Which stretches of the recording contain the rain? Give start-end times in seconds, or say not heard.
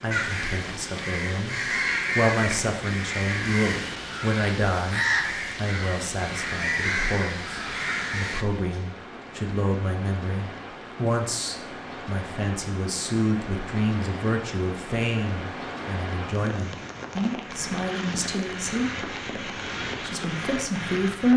0.0-21.3.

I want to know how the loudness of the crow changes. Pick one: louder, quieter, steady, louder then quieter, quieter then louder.
steady.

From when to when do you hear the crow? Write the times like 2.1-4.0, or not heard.
0.1-8.4.